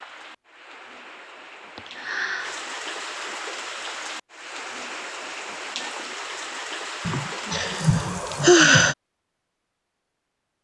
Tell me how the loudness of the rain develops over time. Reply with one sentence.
The loudness of the rain goes up.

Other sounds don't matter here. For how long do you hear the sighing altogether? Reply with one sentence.
The sighing can be heard for 3 seconds in total.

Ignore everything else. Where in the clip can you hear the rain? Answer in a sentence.
The rain can be heard from 0.0 to 8.4 s.